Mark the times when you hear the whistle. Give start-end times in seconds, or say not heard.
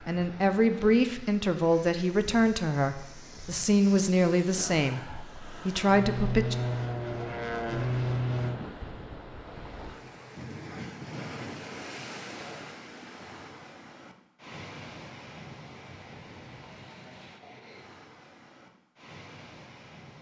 not heard.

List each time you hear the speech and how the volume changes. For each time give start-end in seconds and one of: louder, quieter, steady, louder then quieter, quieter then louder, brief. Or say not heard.
0.1-6.5 steady.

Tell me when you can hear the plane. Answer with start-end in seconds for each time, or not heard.
0.0-8.6.